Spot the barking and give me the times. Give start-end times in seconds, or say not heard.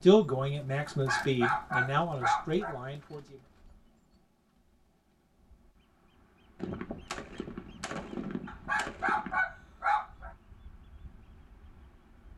0.8-2.8, 8.4-10.3.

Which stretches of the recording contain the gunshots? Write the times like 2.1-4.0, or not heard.
6.5-9.4.